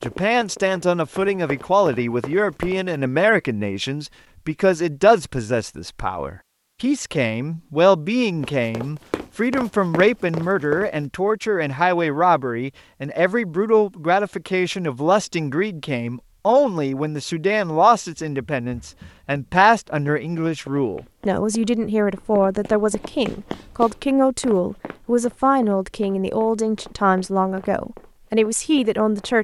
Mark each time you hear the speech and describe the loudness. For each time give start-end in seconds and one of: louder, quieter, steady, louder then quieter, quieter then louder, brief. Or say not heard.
0.0-29.4 steady.